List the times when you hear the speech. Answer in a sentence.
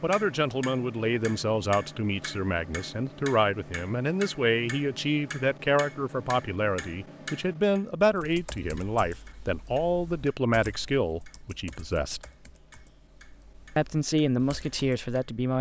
The speech can be heard from 0.0 to 12.2 s and from 13.8 to 15.5 s.